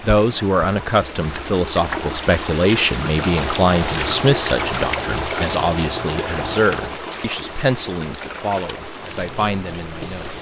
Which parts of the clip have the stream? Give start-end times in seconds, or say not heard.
0.0-10.3.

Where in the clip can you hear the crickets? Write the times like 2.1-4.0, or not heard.
3.0-10.3.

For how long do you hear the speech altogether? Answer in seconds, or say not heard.
10 s.